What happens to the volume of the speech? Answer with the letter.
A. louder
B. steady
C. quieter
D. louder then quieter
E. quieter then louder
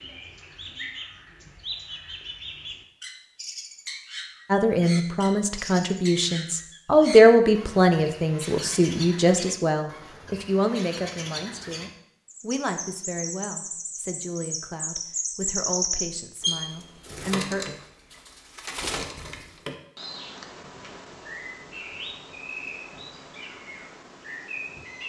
C.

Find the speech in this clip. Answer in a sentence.
You can hear the speech from 4.5 to 17.6 s.